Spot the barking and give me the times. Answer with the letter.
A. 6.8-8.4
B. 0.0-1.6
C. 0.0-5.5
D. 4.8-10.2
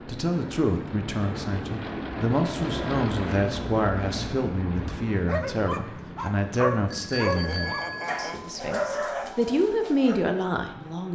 D.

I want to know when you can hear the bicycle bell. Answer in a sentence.
The bicycle bell can be heard from 6.8 to 8.4 s.